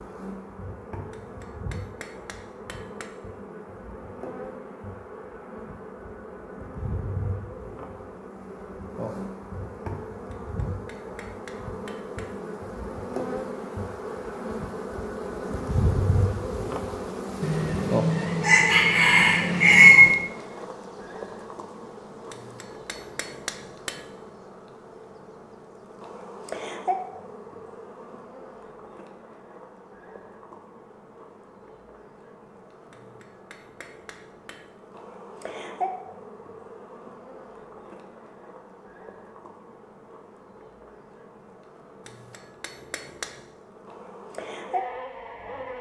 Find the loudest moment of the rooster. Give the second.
20 s.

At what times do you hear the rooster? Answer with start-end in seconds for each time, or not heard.
17.4-20.1.